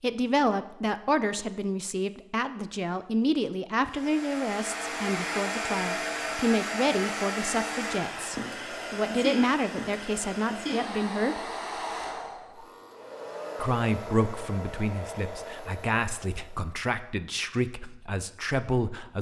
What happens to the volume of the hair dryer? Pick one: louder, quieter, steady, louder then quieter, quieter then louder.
quieter.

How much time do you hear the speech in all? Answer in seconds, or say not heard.
17 s.